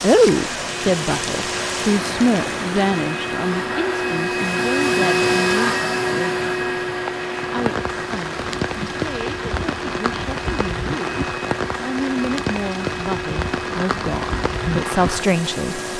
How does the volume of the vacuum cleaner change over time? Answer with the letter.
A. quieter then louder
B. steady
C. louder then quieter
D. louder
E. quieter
C.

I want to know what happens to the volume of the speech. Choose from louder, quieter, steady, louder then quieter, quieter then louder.
quieter then louder.